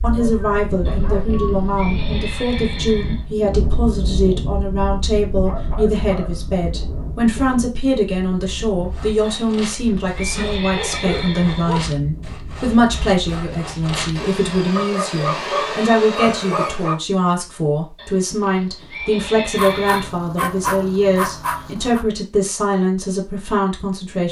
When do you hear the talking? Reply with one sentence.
The talking can be heard from 0.0 to 24.2 s.